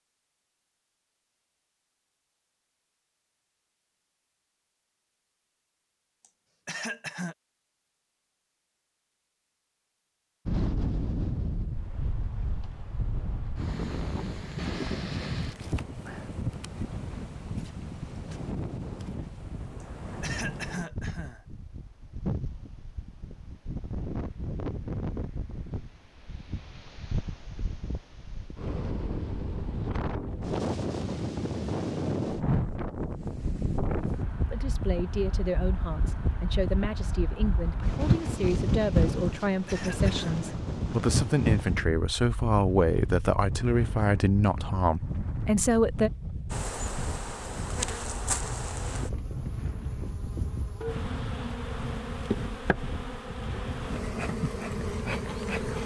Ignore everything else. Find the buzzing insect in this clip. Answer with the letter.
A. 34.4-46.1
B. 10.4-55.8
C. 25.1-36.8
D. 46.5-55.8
D.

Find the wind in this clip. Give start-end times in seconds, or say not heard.
10.4-55.8.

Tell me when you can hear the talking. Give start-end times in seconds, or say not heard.
34.4-46.1.